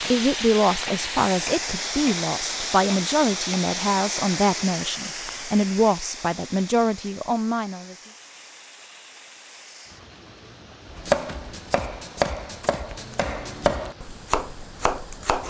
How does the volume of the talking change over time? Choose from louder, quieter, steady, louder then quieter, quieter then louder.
steady.